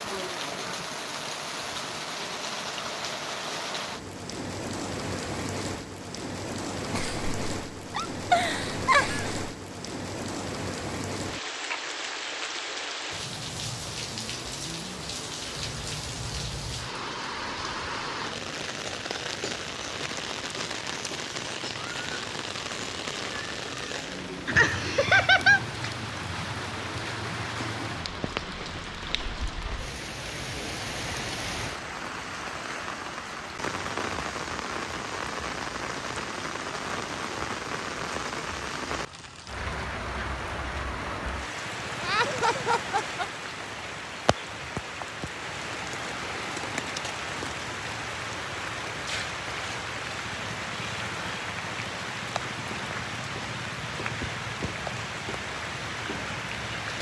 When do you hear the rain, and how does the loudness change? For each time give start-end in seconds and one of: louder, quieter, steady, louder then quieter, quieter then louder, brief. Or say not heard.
0.0-56.9 steady.